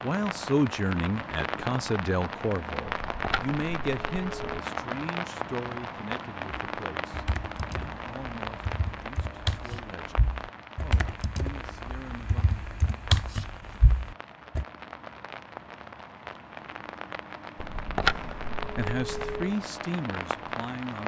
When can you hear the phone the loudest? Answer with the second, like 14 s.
18 s.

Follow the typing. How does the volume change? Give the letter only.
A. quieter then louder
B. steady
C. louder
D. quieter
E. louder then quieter
C.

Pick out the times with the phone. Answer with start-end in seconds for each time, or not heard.
2.9-4.6, 17.6-19.6.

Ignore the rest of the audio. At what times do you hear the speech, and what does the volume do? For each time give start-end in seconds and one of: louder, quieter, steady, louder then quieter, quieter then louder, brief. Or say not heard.
0.0-12.4 quieter
18.6-21.0 brief.